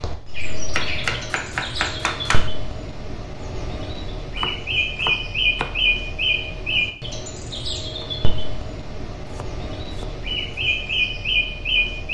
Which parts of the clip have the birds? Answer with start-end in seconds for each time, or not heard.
0.0-12.0.